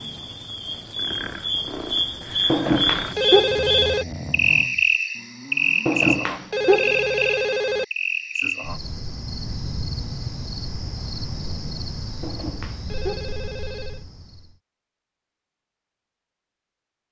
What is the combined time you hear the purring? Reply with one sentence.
You can't hear the purring here.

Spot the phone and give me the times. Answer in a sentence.
You can hear the phone from 2.5 to 4.0 s, from 5.8 to 7.8 s and from 12.2 to 14.0 s.